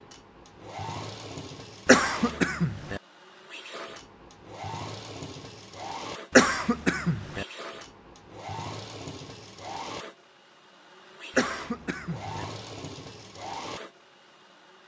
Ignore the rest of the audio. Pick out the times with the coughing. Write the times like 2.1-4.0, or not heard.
1.9-3.0, 6.3-7.5, 11.3-12.4.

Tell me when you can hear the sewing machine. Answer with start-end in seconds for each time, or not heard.
0.0-14.8.